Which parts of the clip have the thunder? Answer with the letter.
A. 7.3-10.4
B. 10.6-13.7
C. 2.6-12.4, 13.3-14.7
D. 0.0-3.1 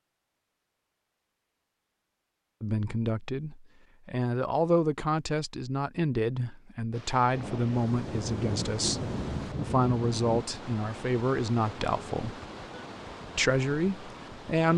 A.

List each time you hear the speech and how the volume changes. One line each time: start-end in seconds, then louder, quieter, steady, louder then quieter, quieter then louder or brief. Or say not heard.
2.6-12.4 steady
13.3-14.7 brief.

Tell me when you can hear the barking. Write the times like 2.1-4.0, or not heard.
not heard.